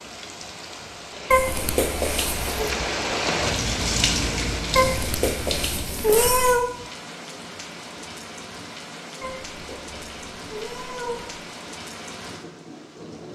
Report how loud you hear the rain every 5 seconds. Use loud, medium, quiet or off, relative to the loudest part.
loud, medium, medium.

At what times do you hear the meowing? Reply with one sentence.
The meowing can be heard from 1.3 to 2.7 s, from 4.8 to 6.7 s and from 9.2 to 11.4 s.